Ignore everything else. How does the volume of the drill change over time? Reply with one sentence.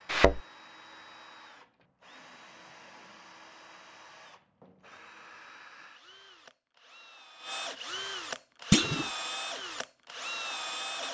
The volume of the drill goes up.